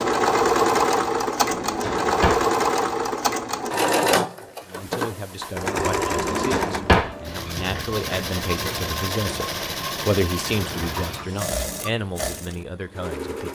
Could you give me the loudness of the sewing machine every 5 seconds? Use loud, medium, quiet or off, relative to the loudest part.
loud, medium, medium.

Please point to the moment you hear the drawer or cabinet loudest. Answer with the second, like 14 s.
7 s.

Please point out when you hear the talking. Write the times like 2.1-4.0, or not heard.
4.7-13.4.